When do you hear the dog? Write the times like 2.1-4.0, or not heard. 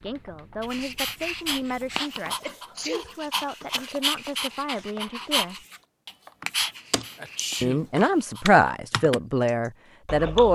0.6-8.6.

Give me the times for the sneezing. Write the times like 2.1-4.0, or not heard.
2.2-3.1, 7.2-7.9.